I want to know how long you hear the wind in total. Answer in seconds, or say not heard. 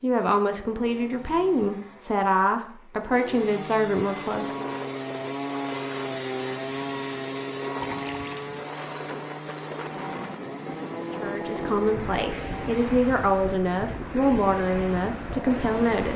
12 s.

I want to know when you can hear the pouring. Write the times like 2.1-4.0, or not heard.
7.8-8.5.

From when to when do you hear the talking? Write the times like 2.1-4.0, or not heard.
0.0-4.8, 11.2-16.1.